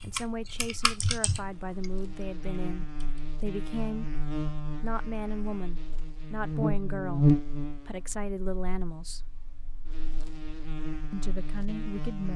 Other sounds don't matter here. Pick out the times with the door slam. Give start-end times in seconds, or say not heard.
not heard.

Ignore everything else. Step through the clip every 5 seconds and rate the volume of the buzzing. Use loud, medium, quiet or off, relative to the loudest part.
medium, loud, medium.